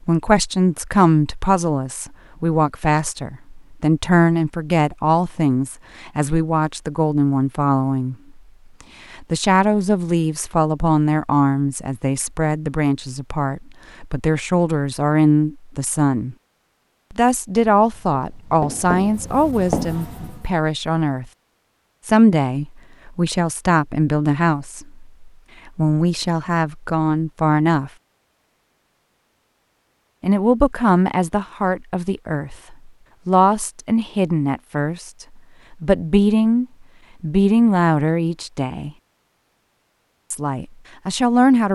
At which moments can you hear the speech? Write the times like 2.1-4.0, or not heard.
0.0-8.2, 9.1-16.4, 17.1-21.2, 22.1-27.9, 30.2-38.9, 40.3-41.7.